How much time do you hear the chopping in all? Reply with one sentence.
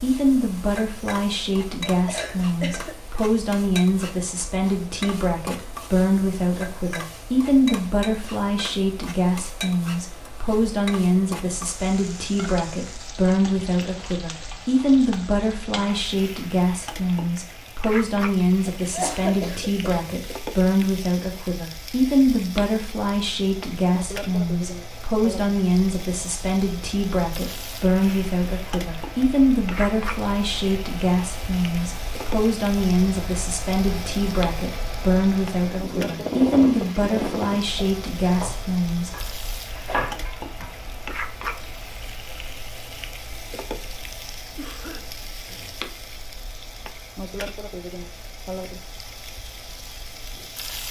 The chopping can be heard for 3 seconds in total.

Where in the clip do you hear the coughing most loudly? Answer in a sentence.
The loudest moment of the coughing is at 19 seconds.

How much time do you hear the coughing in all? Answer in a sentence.
The coughing can be heard for 4 seconds in total.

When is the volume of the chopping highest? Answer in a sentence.
The volume of the chopping peaks at 40 seconds.